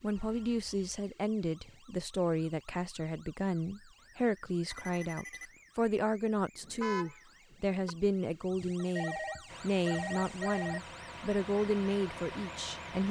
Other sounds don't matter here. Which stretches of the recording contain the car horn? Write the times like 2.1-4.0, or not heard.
6.6-8.0.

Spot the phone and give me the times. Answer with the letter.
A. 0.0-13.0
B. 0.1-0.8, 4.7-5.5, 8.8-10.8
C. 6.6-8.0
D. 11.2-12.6
B.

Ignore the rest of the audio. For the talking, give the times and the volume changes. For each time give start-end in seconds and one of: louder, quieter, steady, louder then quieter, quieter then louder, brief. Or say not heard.
0.0-13.0 steady.